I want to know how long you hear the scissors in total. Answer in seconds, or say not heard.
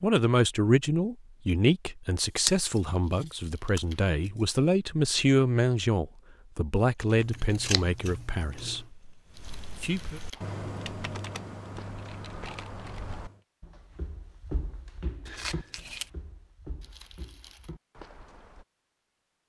4 s.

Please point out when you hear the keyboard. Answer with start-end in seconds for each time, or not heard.
6.8-13.4.